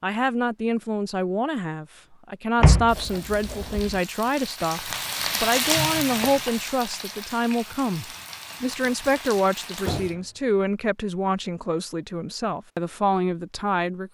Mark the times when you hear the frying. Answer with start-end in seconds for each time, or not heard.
2.9-10.2.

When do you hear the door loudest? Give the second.
3 s.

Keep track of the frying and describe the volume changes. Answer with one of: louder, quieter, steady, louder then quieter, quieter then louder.
louder then quieter.